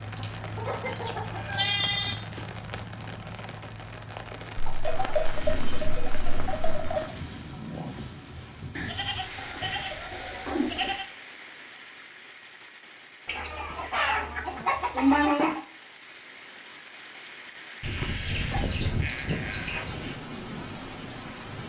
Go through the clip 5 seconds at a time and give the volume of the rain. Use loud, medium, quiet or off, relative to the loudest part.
loud, loud, medium, medium, loud.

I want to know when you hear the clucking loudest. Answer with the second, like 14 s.
15 s.